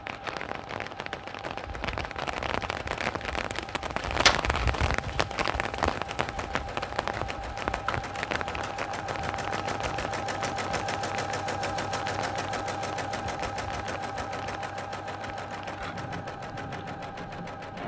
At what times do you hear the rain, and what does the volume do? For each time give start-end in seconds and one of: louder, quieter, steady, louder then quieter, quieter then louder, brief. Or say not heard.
0.0-17.8 quieter.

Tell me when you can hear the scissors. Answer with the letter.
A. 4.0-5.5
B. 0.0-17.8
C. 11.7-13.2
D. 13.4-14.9
A.